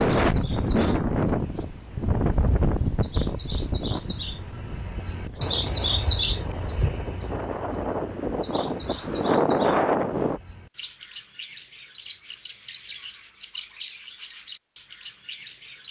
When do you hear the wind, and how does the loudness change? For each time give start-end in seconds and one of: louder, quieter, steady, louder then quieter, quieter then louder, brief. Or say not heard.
0.0-10.4 quieter then louder.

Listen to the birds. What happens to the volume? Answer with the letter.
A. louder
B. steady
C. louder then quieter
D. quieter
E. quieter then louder
C.